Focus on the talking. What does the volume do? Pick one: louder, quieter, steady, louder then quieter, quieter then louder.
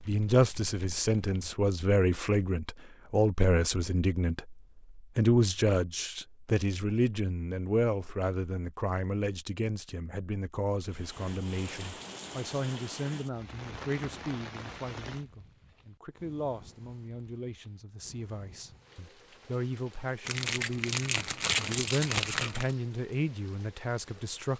quieter then louder.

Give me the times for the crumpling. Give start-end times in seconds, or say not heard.
20.2-22.8.